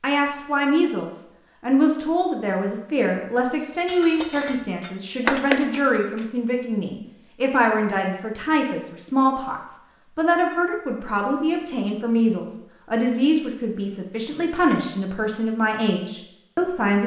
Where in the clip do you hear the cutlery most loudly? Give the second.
5 s.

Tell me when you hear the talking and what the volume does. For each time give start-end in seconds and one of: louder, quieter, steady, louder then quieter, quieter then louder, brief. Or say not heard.
0.0-17.0 steady.